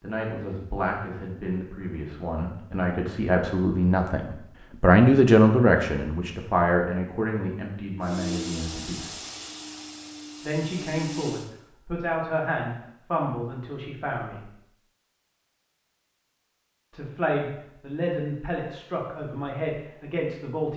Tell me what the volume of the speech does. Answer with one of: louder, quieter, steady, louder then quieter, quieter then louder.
louder then quieter.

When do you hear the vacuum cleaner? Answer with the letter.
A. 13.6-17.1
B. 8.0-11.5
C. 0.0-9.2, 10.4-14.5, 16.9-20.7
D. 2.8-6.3
B.